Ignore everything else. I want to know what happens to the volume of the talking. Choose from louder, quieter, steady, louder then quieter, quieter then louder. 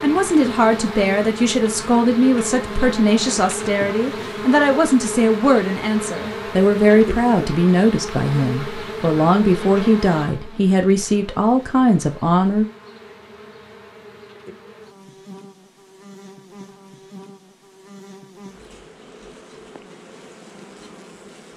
steady.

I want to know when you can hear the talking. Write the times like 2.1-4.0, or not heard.
0.0-12.7.